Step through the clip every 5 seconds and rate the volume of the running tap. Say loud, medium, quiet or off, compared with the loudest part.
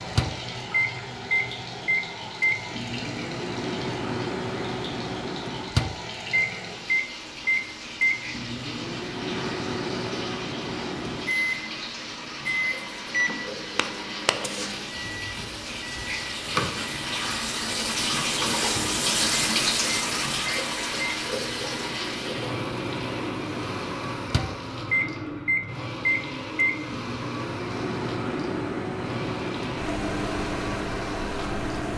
medium, medium, medium, loud, loud, medium, medium.